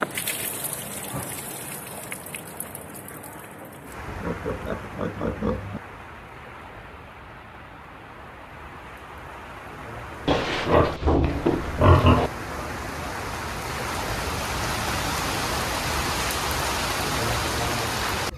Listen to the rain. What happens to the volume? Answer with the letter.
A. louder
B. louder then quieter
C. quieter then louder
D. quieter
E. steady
A.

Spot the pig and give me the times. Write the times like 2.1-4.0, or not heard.
4.0-5.8, 10.2-12.3.